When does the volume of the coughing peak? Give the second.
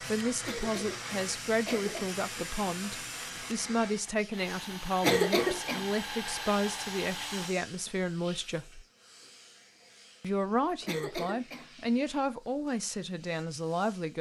5 s.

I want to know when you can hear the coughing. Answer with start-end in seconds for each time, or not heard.
0.5-2.1, 5.0-5.8, 10.8-11.7.